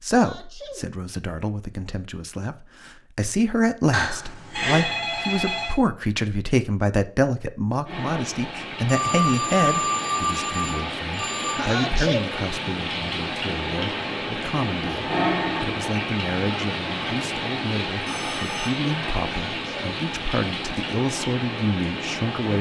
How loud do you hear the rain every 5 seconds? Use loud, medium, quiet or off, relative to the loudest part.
off, medium, loud, loud, loud.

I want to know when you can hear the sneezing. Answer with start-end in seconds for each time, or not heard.
0.1-0.8, 11.6-12.2, 19.2-20.0.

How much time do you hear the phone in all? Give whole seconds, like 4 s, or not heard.
5 s.